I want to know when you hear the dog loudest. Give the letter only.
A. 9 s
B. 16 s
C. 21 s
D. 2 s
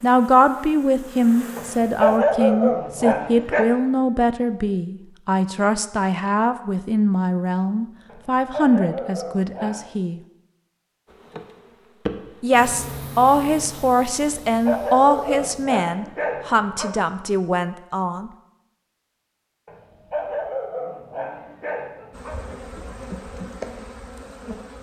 D.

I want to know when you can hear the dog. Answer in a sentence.
You can hear the dog from 1.6 to 3.6 s, from 8.1 to 9.9 s, from 14.2 to 16.9 s and from 19.6 to 22.4 s.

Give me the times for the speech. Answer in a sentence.
You can hear the speech from 0.0 to 10.2 s and from 12.4 to 18.3 s.